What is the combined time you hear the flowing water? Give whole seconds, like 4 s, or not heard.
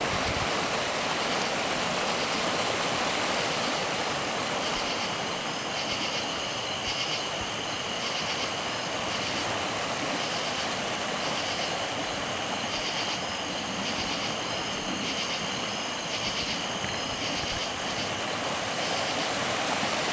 20 s.